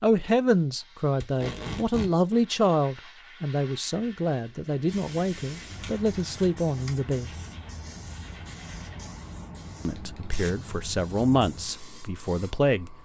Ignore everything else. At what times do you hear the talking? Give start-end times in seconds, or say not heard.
0.0-7.3, 9.8-12.9.